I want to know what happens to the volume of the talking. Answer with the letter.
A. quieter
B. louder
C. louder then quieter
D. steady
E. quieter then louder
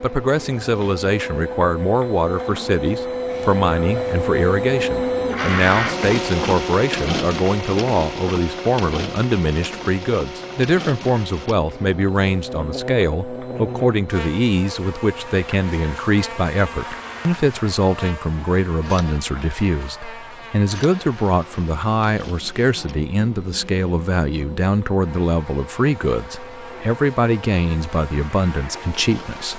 D.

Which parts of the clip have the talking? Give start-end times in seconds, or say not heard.
0.0-29.5.